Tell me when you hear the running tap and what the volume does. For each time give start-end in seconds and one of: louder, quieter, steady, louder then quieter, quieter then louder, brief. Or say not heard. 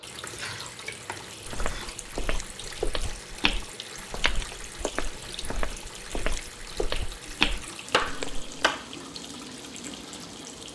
0.0-10.6 steady.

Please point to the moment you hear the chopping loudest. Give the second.
8 s.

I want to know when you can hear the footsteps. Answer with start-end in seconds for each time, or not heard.
1.4-8.7.